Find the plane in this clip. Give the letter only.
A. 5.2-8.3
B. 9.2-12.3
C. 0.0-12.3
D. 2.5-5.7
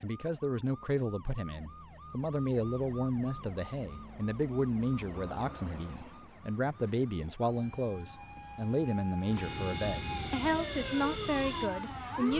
B.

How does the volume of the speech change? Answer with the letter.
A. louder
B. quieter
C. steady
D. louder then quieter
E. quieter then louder
C.